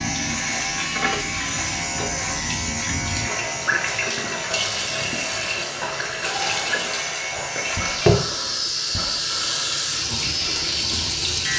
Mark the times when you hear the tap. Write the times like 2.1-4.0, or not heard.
0.0-11.5.